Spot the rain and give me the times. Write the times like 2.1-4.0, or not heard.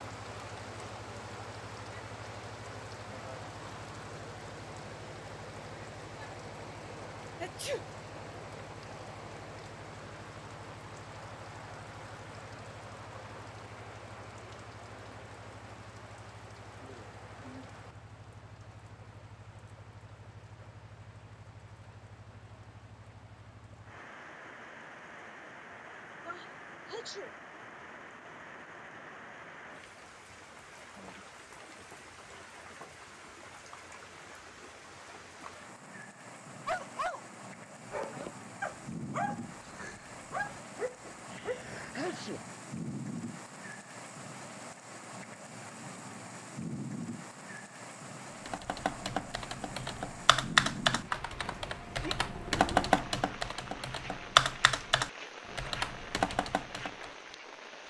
0.0-57.8.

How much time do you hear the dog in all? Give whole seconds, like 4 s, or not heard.
5 s.